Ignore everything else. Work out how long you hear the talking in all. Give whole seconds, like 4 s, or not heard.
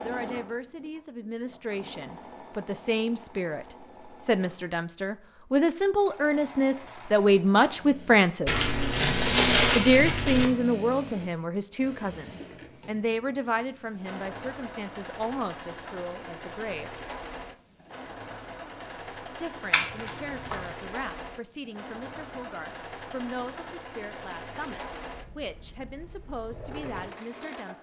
24 s.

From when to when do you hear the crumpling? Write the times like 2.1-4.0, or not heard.
8.4-10.5, 19.7-20.7.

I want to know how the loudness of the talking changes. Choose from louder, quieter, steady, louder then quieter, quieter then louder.
louder then quieter.